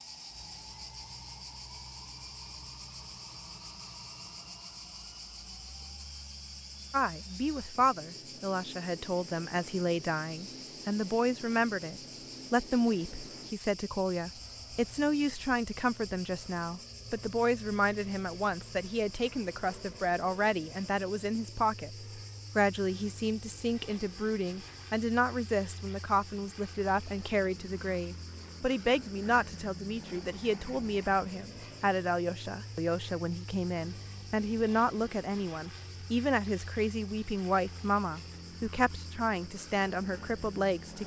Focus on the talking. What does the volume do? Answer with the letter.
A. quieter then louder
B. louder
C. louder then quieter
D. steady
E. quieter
D.